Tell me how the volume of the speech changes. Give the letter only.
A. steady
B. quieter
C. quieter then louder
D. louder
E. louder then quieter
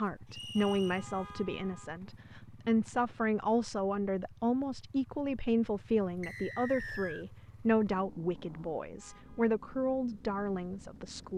A.